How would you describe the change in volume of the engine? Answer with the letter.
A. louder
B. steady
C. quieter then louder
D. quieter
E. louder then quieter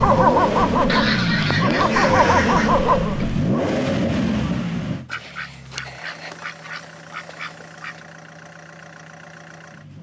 D.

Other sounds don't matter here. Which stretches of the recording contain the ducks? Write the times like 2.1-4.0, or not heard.
0.8-2.8, 5.0-8.0.